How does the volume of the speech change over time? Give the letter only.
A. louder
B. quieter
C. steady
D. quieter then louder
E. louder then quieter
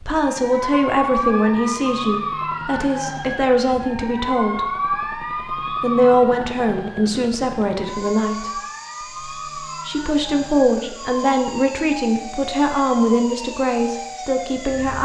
C.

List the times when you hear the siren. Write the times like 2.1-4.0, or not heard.
0.1-15.0.